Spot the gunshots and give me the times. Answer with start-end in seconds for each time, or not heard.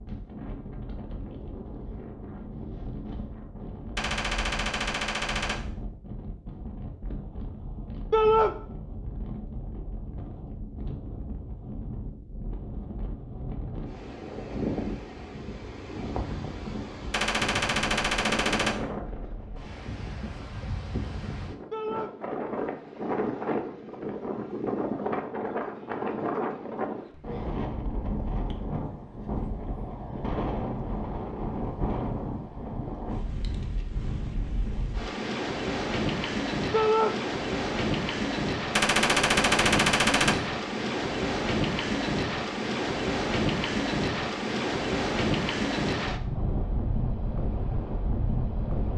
4.0-5.6, 17.1-18.8, 38.8-40.4.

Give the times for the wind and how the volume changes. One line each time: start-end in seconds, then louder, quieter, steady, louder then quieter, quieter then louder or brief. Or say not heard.
0.0-48.9 louder.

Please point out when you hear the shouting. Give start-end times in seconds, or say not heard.
8.1-8.6, 21.7-22.1, 36.7-37.1.